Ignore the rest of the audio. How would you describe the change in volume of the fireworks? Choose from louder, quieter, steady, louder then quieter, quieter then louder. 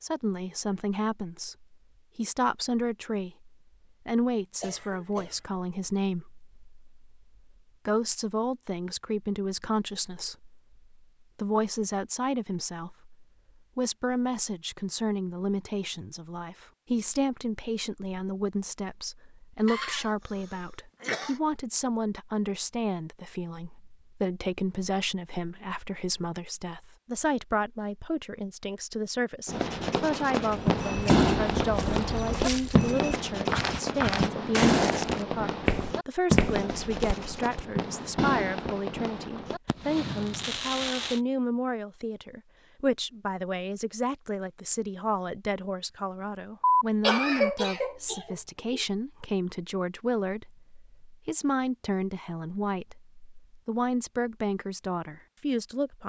quieter.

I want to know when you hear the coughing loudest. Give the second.
47 s.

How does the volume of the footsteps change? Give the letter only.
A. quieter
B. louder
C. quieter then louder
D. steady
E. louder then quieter
B.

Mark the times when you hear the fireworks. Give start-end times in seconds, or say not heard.
29.4-41.2.